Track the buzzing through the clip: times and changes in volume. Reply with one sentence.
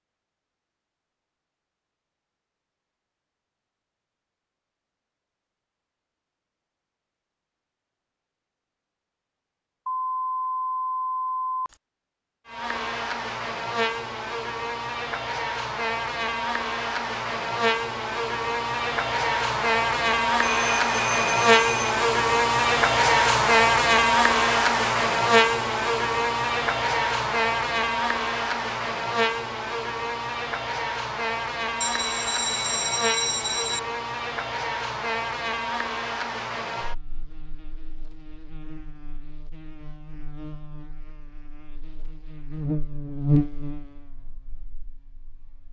The buzzing can be heard from 12.4 to 45.6 s, getting louder then quieter.